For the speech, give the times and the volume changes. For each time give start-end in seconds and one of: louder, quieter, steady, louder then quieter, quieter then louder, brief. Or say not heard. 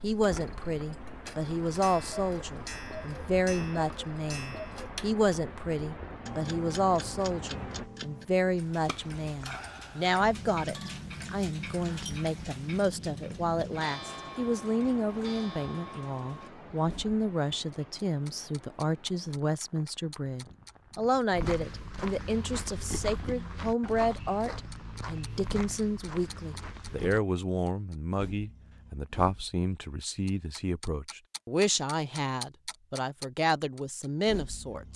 0.0-34.9 steady.